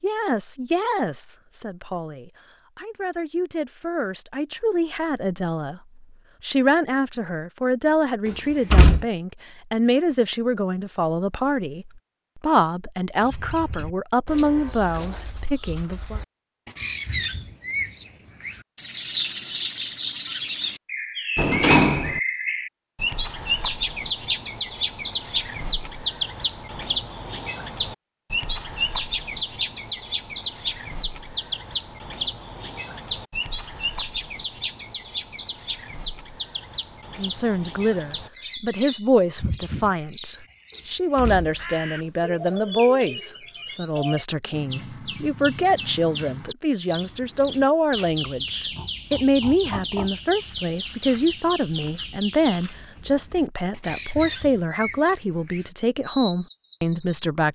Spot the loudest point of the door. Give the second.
22 s.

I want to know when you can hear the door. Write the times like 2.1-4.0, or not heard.
8.2-9.1, 21.4-22.2, 40.8-42.6.